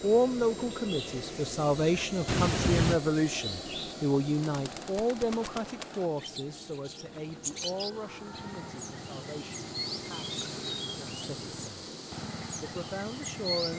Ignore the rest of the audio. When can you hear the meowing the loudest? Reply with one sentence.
The volume of the meowing peaks at 3 seconds.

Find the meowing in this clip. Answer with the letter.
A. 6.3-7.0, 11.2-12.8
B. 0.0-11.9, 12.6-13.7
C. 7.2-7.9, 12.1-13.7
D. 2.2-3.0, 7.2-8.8
D.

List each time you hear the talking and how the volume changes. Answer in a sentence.
The talking can be heard from 0.0 to 11.9 s, getting quieter; and briefly from 12.6 to 13.7 s.